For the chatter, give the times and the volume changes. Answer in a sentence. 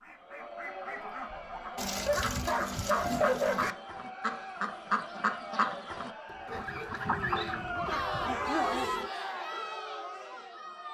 You can hear the chatter from 0.1 to 10.9 s, getting louder.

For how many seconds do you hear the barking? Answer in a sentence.
The barking can be heard for 5 seconds in total.